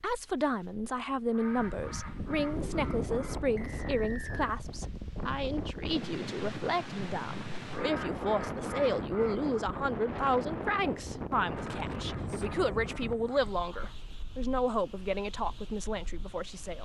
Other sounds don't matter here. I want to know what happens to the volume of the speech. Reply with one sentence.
The loudness of the speech stays about the same.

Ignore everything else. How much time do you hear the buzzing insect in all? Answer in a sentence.
The buzzing insect can't be heard in this clip.